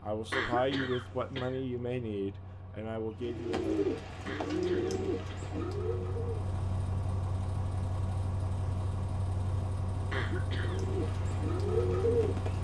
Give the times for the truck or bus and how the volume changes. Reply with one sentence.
The truck or bus can be heard from 0.0 to 12.6 s, getting louder.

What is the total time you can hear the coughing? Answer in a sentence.
You can hear the coughing for 3 seconds altogether.